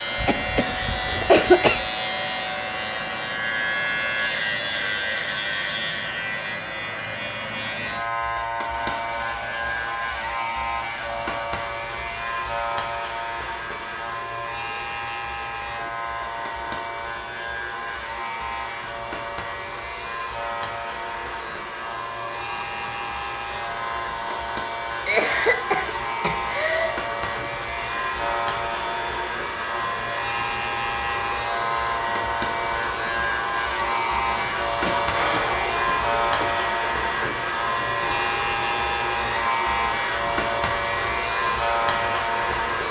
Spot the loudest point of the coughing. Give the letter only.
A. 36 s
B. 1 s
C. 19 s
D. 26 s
B.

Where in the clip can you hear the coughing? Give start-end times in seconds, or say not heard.
0.1-1.9, 25.1-26.9, 34.8-36.5.